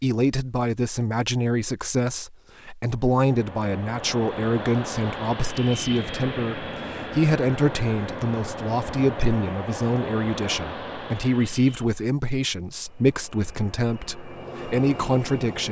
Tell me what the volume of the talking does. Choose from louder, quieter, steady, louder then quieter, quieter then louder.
steady.